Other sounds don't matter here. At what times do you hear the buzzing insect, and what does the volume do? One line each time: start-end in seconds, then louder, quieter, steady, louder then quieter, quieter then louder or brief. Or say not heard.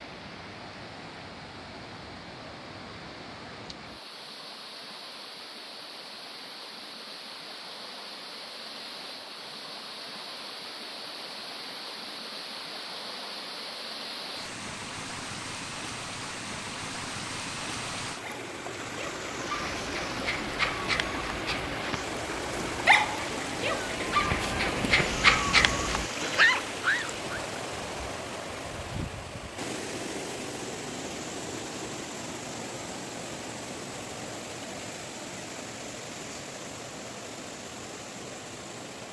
not heard.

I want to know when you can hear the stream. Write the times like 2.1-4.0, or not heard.
0.0-39.0.